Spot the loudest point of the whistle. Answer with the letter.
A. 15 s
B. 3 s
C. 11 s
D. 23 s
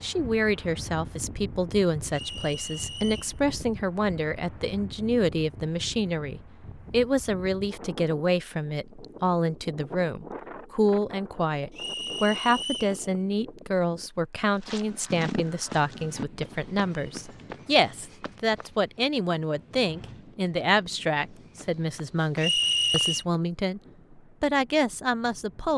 D.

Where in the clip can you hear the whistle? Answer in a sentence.
The whistle can be heard from 2.1 to 3.4 s, from 11.8 to 13.0 s and from 22.4 to 23.2 s.